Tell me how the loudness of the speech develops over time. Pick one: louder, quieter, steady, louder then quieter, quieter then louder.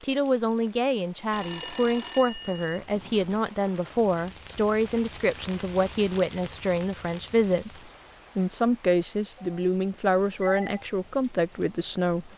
steady.